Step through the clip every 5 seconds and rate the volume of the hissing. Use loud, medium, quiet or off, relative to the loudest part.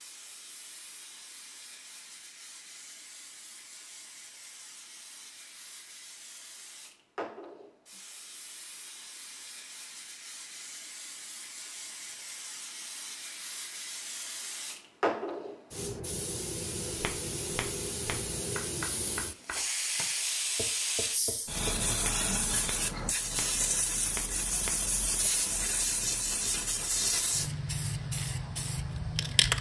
quiet, quiet, quiet, medium, loud, loud.